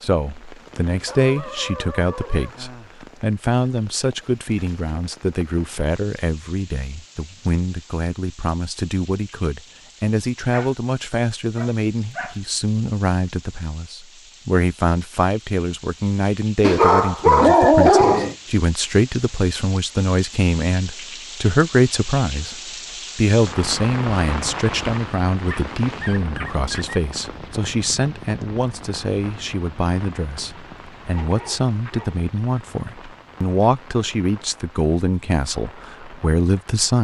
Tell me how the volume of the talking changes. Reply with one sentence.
The volume of the talking stays about the same.